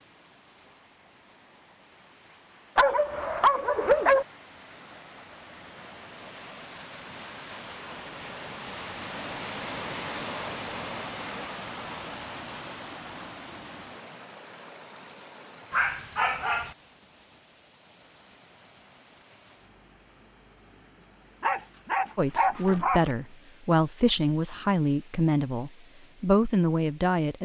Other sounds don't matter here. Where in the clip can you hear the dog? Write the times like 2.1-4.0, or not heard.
2.8-4.2, 15.7-16.8, 21.4-23.1.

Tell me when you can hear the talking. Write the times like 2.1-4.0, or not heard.
22.1-27.4.